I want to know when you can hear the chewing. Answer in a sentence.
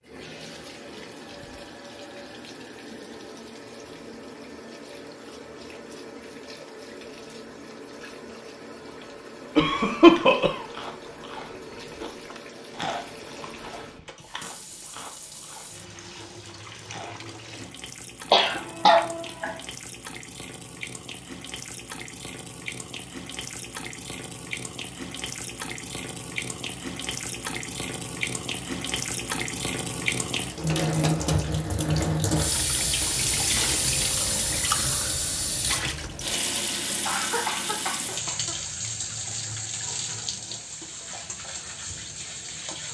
You can hear the chewing from 10.0 to 17.2 s.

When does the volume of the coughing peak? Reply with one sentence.
The volume of the coughing peaks at 10 seconds.